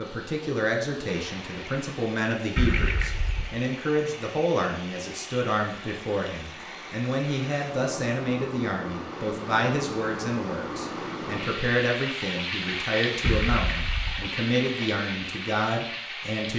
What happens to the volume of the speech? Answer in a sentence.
The loudness of the speech stays about the same.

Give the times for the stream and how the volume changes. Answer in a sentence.
The stream can be heard from 0.0 to 16.5 s, getting louder.